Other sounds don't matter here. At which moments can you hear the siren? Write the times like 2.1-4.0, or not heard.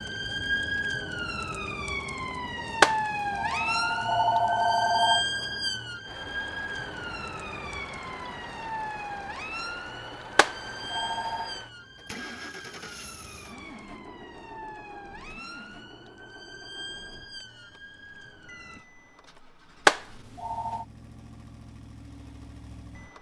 0.0-18.9.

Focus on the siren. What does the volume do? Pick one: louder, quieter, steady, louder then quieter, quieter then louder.
quieter.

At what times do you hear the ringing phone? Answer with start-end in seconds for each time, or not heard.
2.8-5.2, 10.3-11.5, 19.9-20.9.